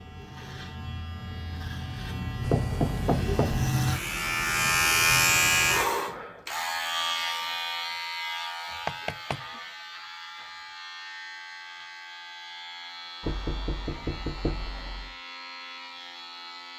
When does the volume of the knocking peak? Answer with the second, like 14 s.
3 s.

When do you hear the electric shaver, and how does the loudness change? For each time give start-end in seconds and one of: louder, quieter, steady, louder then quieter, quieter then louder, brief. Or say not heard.
0.0-16.7 louder then quieter.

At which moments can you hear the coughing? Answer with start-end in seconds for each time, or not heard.
not heard.